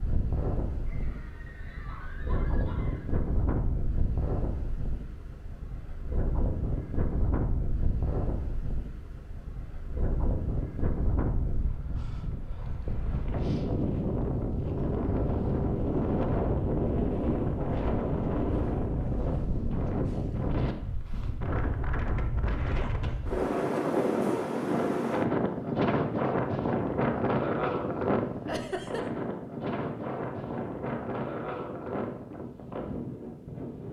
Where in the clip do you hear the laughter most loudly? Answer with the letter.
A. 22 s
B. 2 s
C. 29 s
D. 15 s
C.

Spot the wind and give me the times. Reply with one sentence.
You can hear the wind from 0.0 to 33.8 s.